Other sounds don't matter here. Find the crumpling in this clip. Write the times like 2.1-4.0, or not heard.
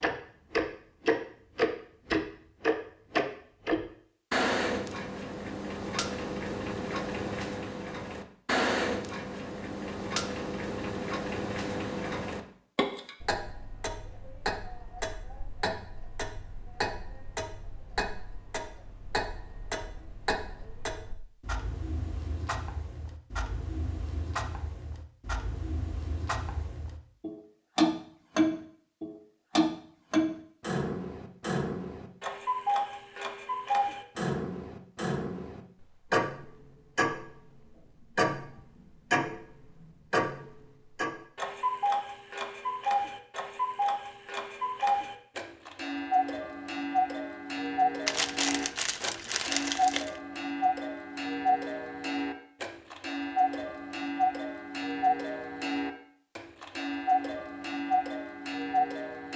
48.0-50.2.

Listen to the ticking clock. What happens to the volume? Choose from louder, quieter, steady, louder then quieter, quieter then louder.
quieter then louder.